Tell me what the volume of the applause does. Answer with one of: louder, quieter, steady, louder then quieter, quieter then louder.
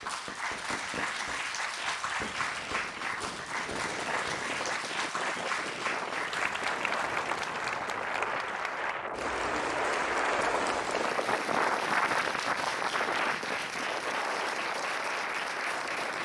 steady.